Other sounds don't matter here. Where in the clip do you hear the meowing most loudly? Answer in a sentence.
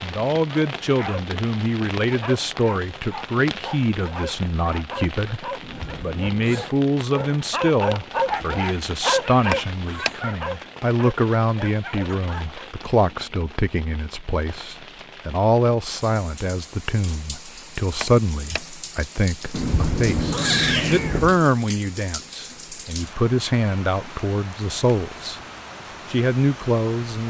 The volume of the meowing peaks at 21 seconds.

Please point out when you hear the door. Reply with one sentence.
The door can be heard from 9.5 to 10.2 s and from 18.0 to 18.6 s.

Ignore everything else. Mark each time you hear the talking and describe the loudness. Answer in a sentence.
You can hear the talking from 0.0 to 25.4 s, at a steady volume; and briefly from 26.1 to 27.2 s.